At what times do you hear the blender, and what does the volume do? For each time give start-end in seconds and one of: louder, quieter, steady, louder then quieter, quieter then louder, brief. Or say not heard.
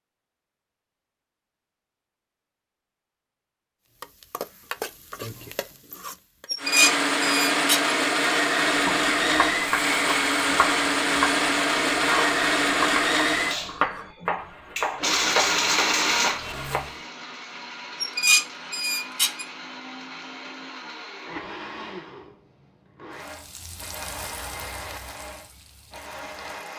6.5-26.7 quieter.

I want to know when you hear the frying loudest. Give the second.
5 s.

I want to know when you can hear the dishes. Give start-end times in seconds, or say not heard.
6.5-8.0, 18.0-19.4.